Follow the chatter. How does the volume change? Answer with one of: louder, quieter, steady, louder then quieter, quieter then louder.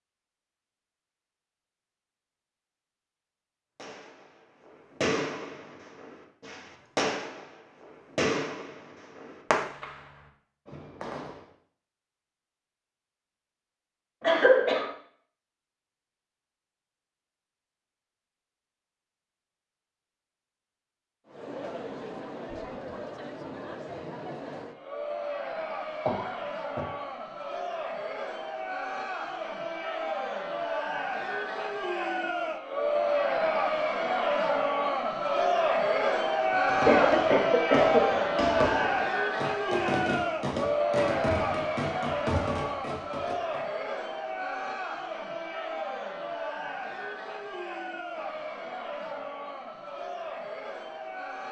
louder then quieter.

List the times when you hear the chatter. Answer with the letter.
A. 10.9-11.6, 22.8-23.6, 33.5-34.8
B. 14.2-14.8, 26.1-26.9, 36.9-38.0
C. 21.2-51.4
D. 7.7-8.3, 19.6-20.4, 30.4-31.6
C.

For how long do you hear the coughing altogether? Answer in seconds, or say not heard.
3 s.